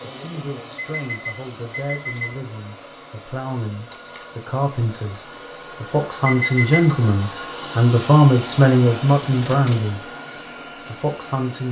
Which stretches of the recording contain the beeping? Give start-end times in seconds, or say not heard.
0.8-2.4, 6.2-7.0.